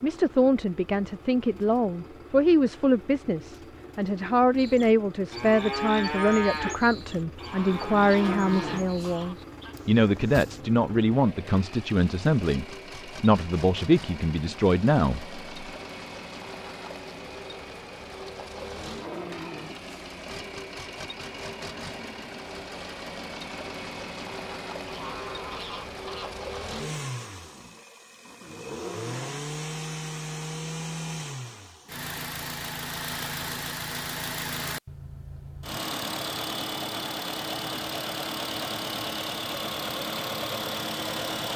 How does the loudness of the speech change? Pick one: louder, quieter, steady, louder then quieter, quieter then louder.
steady.